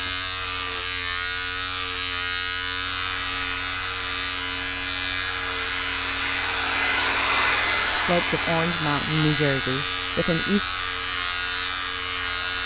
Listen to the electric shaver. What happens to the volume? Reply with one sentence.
The loudness of the electric shaver stays about the same.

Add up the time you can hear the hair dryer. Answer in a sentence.
You can hear the hair dryer for 10 seconds altogether.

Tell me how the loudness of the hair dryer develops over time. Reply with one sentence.
The loudness of the hair dryer goes up, then down.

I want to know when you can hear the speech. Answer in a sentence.
The speech can be heard from 7.9 to 10.6 s.